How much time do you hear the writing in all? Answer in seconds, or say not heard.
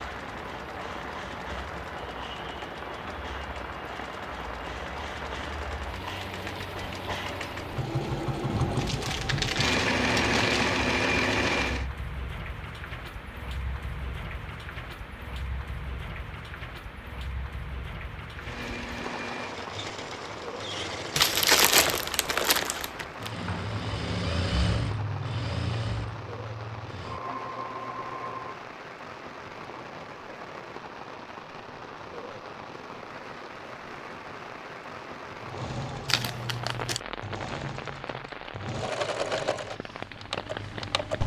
not heard.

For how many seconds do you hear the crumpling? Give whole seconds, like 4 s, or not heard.
5 s.